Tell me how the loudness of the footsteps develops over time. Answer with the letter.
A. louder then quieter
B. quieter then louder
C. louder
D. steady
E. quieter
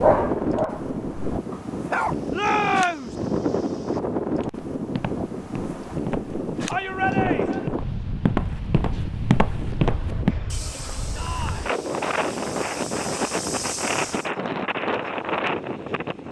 A.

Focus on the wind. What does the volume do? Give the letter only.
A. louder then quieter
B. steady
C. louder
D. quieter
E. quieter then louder
B.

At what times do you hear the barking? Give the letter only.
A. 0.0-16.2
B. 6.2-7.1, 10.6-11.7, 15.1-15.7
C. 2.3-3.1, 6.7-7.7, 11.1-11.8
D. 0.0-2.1
D.